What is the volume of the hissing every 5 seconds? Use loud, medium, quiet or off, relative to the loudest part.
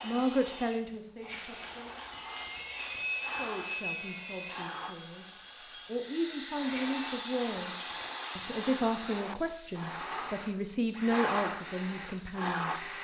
medium, medium, loud.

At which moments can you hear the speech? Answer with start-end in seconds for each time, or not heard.
0.0-2.0, 3.3-12.7.